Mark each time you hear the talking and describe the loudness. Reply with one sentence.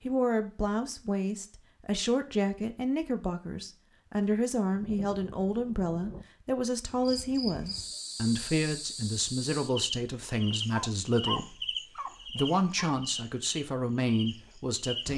The talking can be heard from 0.0 to 15.1 s, at a steady volume.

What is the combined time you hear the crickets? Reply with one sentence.
The crickets can be heard for 8 seconds in total.